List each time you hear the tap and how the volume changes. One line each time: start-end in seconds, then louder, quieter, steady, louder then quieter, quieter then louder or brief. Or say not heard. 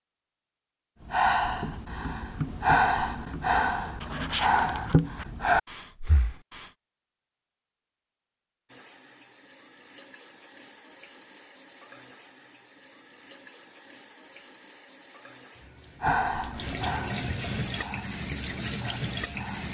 8.7-19.6 louder.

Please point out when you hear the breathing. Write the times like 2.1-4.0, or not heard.
1.1-6.7, 16.0-19.6.